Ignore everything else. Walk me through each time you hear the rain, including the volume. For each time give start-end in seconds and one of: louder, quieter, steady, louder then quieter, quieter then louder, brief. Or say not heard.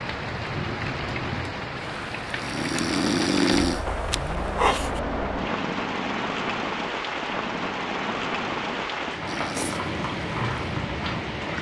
0.0-11.5 steady.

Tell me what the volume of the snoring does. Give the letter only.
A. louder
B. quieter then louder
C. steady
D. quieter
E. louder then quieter
D.